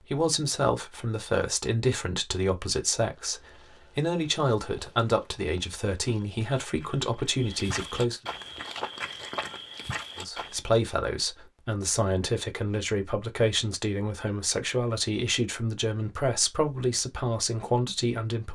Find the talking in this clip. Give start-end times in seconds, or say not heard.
0.0-8.2, 10.2-18.5.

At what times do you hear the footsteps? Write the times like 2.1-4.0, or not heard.
3.0-10.6.